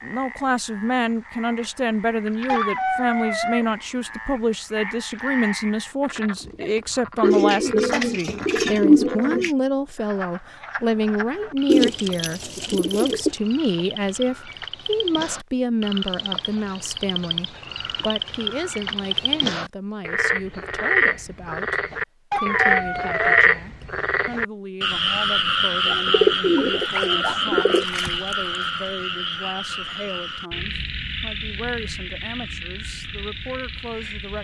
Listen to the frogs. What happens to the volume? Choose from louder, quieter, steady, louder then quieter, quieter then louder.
louder then quieter.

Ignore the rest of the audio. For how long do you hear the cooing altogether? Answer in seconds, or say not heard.
6 s.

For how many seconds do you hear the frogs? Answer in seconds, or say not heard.
34 s.